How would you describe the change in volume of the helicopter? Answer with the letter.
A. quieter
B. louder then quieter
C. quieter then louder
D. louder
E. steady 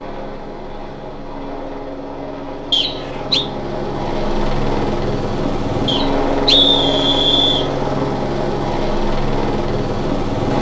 D.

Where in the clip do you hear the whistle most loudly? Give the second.
7 s.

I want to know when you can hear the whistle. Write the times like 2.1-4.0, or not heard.
2.7-3.5, 5.8-7.7.